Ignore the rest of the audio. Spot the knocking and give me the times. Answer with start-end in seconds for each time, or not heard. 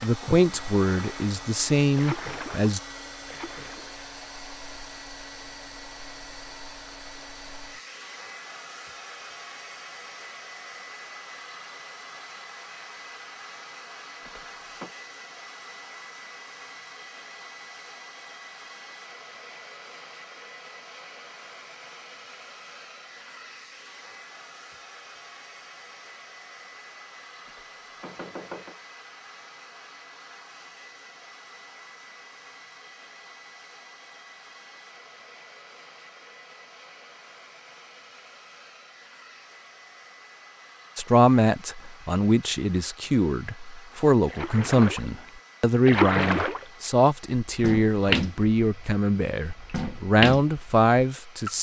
14.2-14.9, 27.4-28.8.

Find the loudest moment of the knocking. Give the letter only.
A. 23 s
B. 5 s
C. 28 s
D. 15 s
C.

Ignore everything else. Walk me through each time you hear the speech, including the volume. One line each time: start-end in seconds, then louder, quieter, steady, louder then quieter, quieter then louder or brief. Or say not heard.
0.0-2.8 brief
41.0-51.5 steady.